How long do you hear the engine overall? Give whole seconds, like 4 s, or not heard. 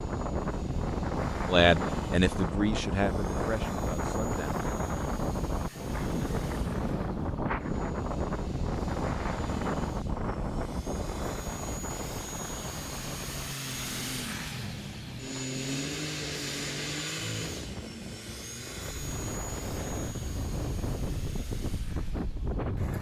23 s.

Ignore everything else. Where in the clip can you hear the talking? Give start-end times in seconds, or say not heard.
1.4-4.5.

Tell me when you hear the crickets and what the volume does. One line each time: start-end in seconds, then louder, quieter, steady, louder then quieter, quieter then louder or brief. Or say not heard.
not heard.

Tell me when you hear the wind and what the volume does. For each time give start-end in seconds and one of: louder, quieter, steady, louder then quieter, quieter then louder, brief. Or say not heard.
0.0-22.9 quieter then louder.